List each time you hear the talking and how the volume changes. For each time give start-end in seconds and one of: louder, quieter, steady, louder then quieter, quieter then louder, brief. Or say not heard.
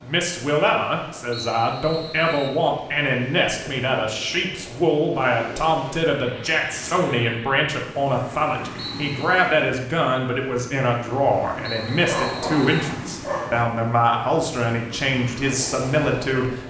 0.0-16.6 steady.